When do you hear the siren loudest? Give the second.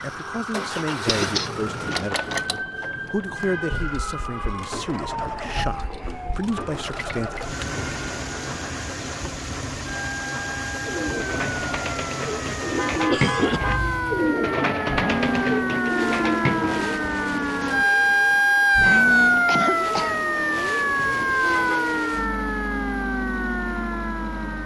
19 s.